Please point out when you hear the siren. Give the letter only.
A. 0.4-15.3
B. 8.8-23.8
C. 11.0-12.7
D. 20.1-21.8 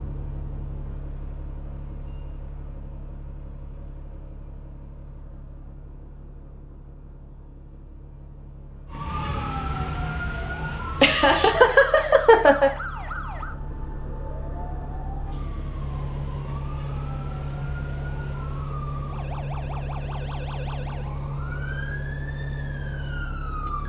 B.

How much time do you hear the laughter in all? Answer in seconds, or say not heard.
2 s.